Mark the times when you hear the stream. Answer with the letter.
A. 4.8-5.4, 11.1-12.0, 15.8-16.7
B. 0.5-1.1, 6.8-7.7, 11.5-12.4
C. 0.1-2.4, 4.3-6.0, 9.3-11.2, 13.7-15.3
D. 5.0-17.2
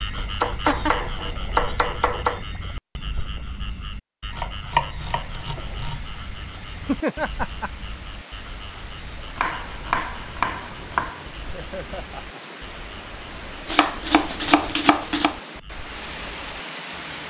D.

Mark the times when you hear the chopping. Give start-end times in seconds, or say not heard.
0.1-2.4, 4.3-6.0, 9.3-11.2, 13.7-15.3.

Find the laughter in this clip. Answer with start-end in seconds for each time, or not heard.
0.5-1.1, 6.8-7.7, 11.5-12.4.